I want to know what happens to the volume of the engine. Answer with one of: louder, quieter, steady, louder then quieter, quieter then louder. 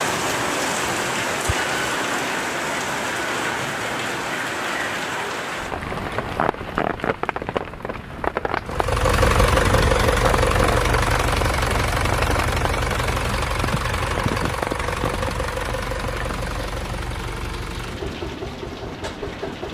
quieter.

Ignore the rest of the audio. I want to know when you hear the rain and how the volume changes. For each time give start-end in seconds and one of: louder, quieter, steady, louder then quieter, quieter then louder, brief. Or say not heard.
0.0-19.6 quieter.